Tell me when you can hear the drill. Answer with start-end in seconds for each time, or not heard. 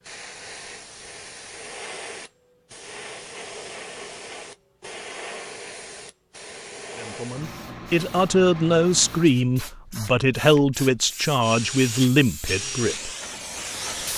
11.4-14.1.